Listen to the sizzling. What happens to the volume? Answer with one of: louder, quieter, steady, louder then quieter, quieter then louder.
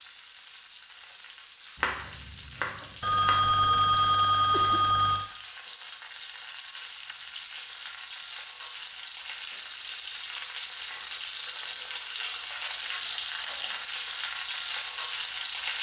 louder.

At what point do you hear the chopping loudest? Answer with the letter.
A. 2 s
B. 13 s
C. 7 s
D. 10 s
A.